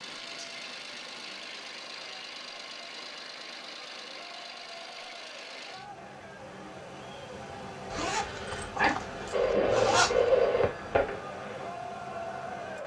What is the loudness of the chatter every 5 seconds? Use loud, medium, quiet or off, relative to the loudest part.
quiet, medium, loud.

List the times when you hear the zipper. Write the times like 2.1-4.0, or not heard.
7.9-10.4.